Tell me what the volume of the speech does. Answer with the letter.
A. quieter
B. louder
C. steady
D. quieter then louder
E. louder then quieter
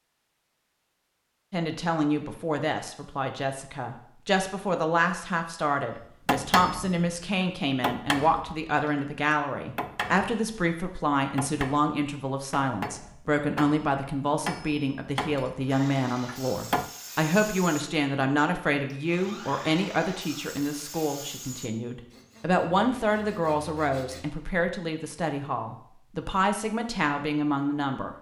C.